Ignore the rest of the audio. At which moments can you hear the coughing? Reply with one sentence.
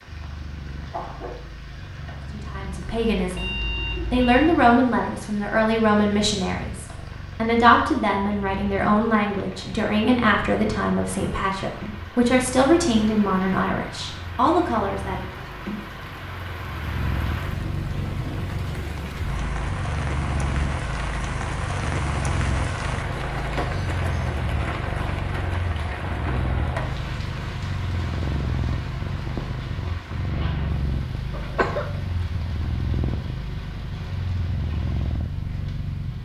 The coughing can be heard from 0.9 to 1.4 s and from 31.3 to 31.9 s.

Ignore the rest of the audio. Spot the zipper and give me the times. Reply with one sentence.
You can't hear the zipper here.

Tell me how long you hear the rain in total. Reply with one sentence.
The rain can be heard for 36 seconds in total.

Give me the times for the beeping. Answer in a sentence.
The beeping can be heard from 2.9 to 4.5 s.